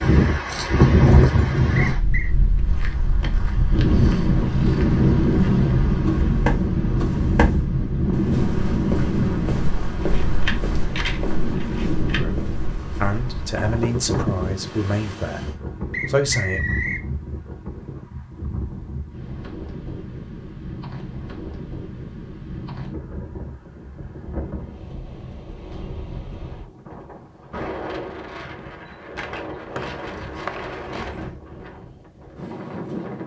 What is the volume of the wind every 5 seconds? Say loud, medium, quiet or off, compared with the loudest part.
loud, loud, medium, quiet, quiet, quiet, quiet.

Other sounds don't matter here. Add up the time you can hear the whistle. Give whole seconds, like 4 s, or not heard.
3 s.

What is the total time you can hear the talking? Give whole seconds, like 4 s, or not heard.
5 s.